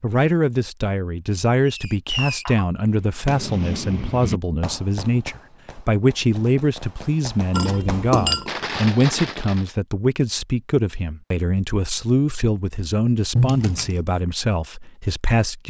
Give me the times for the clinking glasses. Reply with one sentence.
You can hear the clinking glasses from 2.1 to 2.7 s, from 7.5 to 8.5 s and from 13.3 to 13.9 s.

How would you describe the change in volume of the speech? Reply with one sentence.
The volume of the speech stays about the same.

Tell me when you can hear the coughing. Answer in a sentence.
You can't hear the coughing here.